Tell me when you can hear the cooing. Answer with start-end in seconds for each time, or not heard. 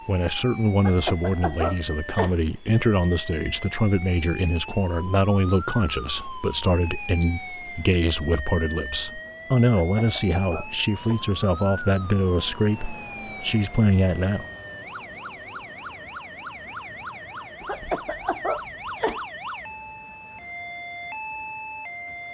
not heard.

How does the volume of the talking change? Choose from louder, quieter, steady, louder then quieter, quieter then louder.
steady.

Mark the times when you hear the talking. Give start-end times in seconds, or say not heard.
0.1-14.4.